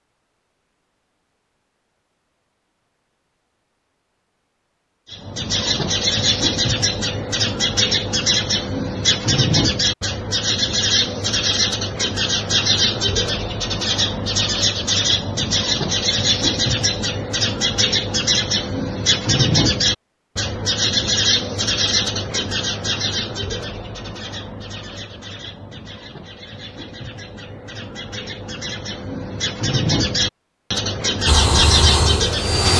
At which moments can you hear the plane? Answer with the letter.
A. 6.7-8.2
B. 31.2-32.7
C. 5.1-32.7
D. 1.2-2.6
B.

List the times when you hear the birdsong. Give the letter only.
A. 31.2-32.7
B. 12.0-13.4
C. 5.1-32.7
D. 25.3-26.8
C.